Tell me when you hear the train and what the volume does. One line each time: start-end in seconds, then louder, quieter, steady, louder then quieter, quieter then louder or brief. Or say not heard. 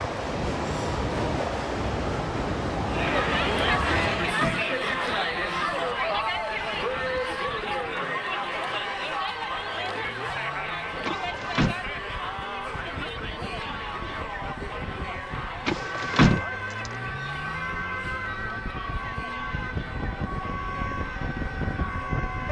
0.0-4.3 steady.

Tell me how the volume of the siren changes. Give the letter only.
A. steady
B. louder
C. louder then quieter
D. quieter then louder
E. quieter
B.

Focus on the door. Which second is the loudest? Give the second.
16 s.